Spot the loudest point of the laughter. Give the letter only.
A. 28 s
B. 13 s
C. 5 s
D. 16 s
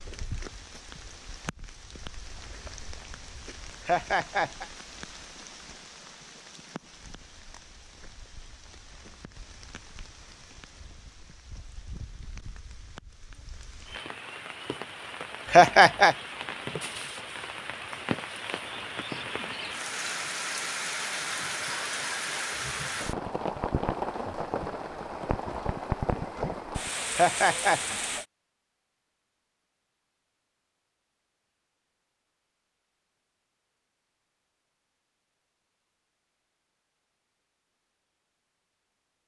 D.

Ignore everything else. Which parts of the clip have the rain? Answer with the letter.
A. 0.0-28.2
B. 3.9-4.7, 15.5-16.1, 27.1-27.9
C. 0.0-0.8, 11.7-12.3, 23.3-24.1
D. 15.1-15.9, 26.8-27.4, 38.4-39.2
A.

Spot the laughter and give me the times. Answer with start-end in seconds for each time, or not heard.
3.9-4.7, 15.5-16.1, 27.1-27.9.